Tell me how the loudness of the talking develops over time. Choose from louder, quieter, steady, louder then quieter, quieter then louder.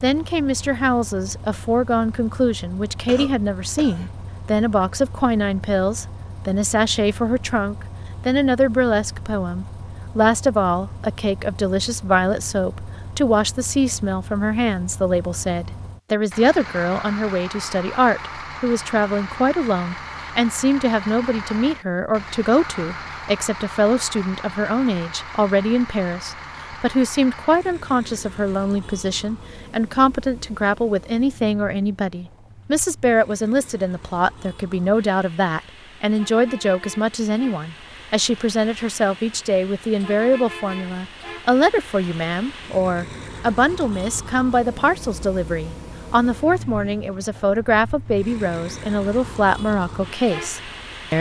steady.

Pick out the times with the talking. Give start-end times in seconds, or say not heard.
0.0-51.1.